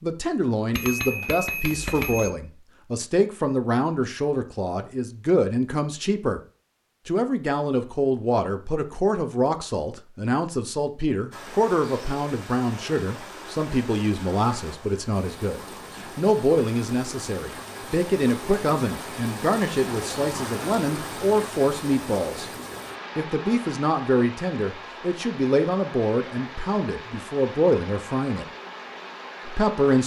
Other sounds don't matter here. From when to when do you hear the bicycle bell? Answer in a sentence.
You can hear the bicycle bell from 0.7 to 2.3 s.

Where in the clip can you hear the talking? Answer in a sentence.
You can hear the talking from 0.0 to 6.4 s, from 7.0 to 22.5 s, from 23.1 to 28.4 s and from 29.4 to 30.0 s.